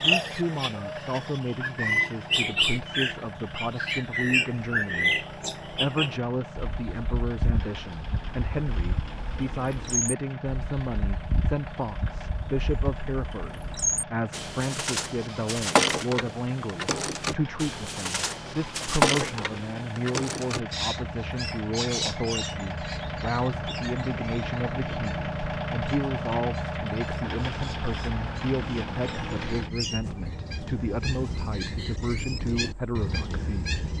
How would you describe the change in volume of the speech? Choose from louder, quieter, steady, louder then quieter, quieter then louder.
steady.